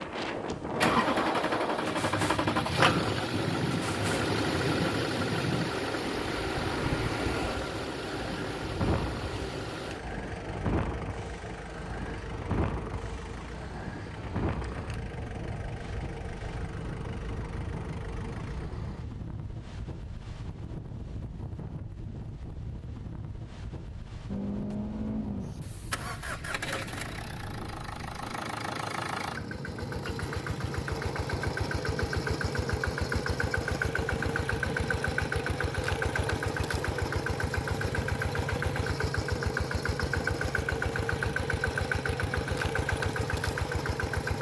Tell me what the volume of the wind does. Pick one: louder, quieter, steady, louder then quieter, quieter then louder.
quieter.